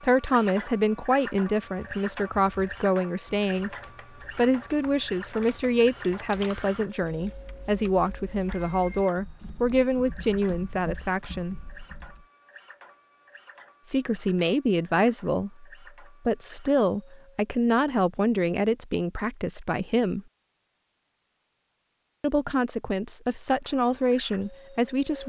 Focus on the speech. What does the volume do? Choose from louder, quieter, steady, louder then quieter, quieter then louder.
steady.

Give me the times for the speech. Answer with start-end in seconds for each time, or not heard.
0.0-3.7, 4.3-11.6, 13.8-20.2, 22.2-25.2.